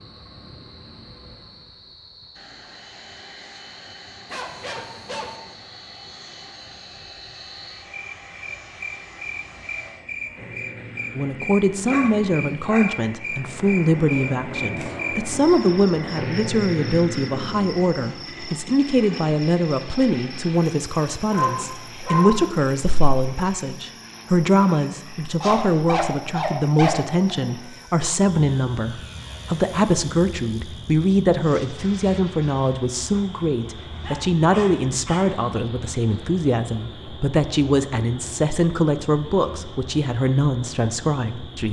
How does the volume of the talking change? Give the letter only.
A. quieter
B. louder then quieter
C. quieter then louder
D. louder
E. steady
E.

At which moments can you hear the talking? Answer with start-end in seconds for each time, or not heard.
11.2-41.6.